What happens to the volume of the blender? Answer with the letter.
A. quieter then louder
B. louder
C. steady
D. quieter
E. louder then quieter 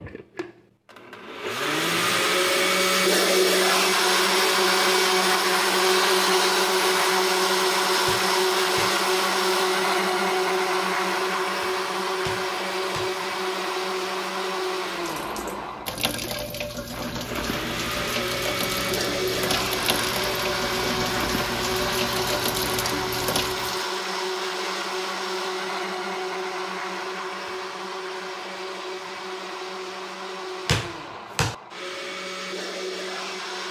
D.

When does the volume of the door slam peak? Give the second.
31 s.